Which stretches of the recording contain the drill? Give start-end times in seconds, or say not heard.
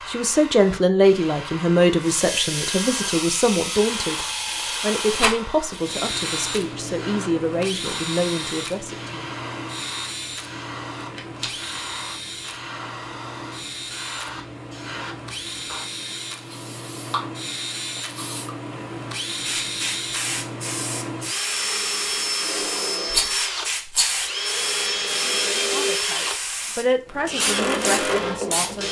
2.0-28.8.